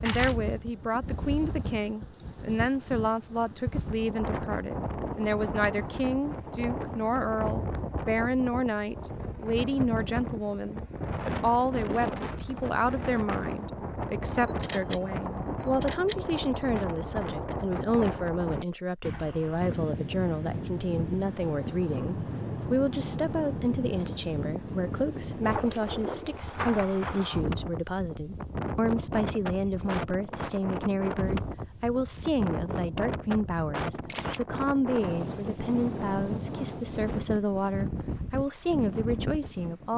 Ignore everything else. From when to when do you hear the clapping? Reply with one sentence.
You can't hear the clapping here.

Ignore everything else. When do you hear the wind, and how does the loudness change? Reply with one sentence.
The wind can be heard from 0.0 to 39.9 s, at a steady volume.